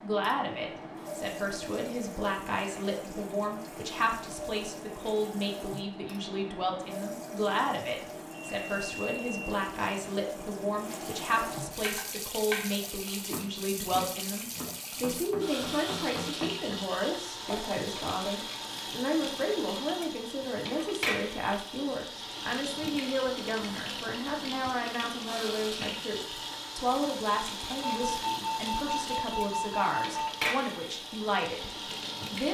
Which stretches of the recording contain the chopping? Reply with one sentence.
You can hear the chopping from 11.8 to 18.0 s.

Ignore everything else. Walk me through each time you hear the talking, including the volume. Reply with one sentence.
The talking can be heard from 0.0 to 32.4 s, at a steady volume.